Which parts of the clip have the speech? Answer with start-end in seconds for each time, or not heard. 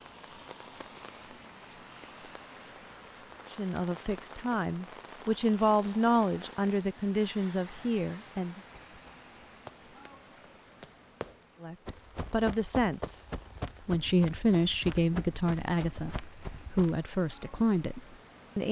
3.5-8.6, 11.6-13.2, 13.8-18.6.